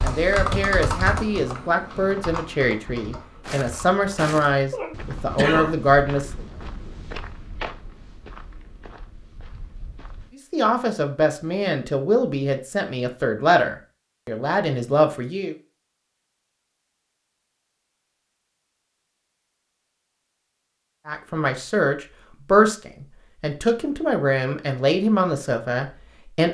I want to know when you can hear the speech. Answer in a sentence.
You can hear the speech from 0.0 to 6.4 s, from 10.3 to 15.6 s and from 21.1 to 26.4 s.